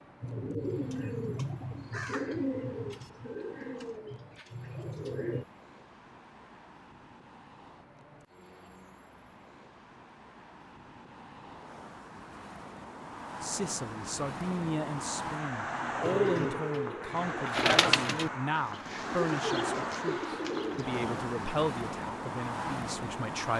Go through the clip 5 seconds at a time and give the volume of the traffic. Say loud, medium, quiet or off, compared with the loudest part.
quiet, quiet, medium, loud, loud.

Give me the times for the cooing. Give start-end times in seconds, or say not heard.
0.2-5.5, 16.0-21.1.